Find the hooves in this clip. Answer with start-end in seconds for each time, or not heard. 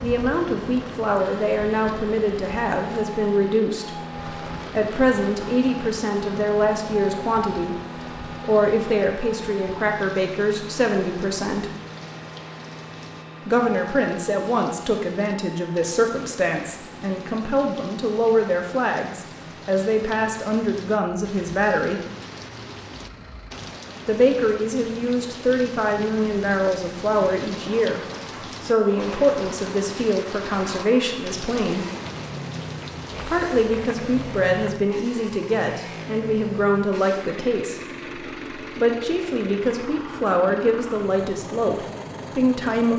not heard.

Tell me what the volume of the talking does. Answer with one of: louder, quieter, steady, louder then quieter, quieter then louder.
steady.